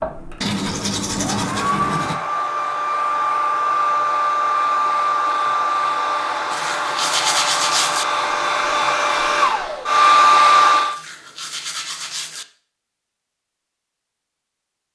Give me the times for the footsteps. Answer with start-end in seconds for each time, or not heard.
not heard.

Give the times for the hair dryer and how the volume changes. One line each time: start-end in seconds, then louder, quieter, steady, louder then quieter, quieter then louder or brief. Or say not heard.
0.0-10.9 louder.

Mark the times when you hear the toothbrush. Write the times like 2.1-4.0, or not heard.
0.4-2.2, 6.5-8.1, 10.9-12.4.